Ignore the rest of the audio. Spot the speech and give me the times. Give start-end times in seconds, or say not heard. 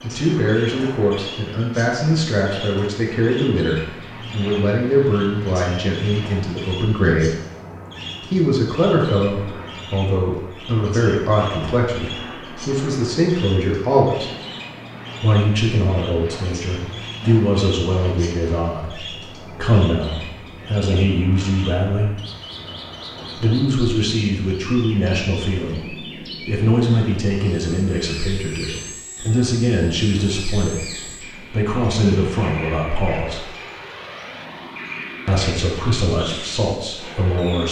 0.0-7.3, 8.2-14.3, 15.2-22.1, 23.4-33.5, 35.2-37.6.